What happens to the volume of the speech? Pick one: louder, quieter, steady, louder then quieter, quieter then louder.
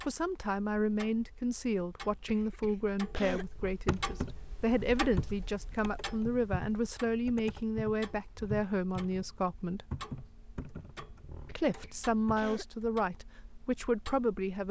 steady.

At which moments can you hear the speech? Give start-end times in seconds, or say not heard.
0.1-9.8, 11.6-14.6.